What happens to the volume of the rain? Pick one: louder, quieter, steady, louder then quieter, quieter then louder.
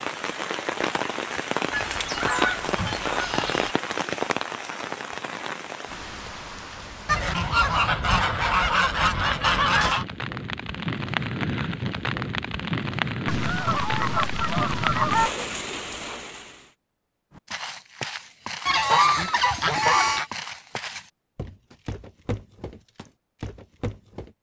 quieter then louder.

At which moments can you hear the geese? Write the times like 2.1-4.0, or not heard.
1.7-3.8, 7.0-10.1, 13.2-15.3, 18.6-20.2.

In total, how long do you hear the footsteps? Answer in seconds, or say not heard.
7 s.